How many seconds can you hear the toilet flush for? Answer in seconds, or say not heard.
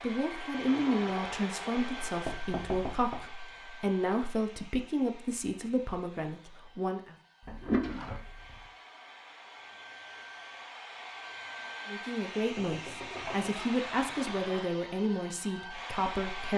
4 s.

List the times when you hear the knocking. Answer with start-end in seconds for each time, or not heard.
1.8-3.2, 7.4-8.7, 12.6-13.6.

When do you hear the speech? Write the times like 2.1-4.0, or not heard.
0.0-7.2, 11.8-16.5.